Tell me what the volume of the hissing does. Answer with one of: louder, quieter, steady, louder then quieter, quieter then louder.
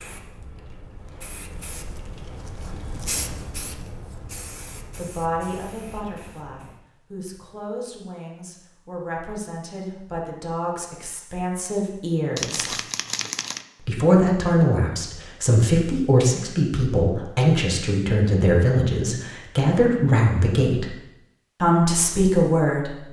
louder then quieter.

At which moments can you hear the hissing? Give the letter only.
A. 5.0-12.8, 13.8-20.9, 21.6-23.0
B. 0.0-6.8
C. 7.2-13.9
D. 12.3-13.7
B.